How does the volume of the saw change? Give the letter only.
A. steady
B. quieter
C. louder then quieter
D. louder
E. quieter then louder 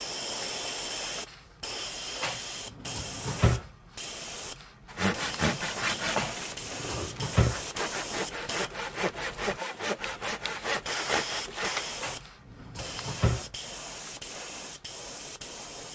E.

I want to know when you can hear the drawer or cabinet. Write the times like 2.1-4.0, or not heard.
2.1-3.6, 6.1-7.6, 11.9-13.4.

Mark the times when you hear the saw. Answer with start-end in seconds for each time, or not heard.
4.8-11.8.